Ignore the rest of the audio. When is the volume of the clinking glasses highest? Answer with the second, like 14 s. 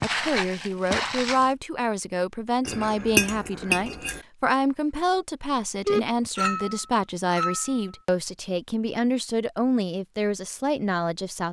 3 s.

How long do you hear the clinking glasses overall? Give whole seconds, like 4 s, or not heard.
3 s.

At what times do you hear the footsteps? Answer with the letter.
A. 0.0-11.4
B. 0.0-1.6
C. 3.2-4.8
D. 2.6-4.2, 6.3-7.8
B.